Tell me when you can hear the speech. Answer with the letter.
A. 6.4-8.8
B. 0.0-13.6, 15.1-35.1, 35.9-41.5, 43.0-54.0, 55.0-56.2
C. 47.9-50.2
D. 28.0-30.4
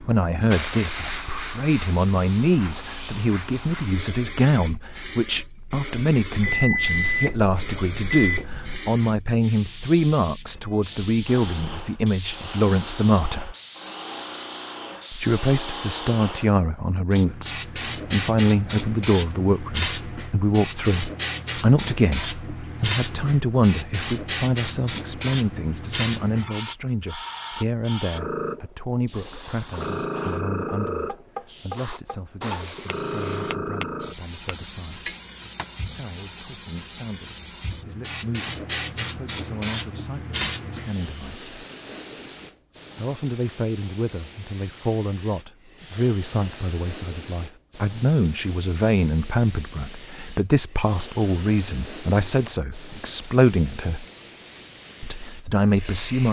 B.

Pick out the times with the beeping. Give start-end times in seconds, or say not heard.
6.4-8.8.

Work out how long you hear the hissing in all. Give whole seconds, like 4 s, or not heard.
56 s.